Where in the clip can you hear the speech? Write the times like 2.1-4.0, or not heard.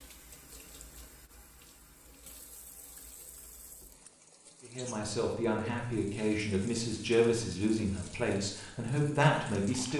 4.7-9.9.